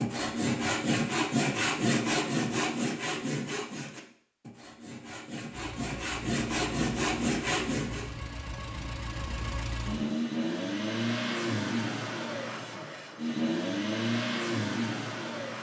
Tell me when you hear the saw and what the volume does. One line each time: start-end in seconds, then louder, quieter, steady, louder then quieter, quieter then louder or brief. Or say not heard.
0.0-8.1 quieter then louder.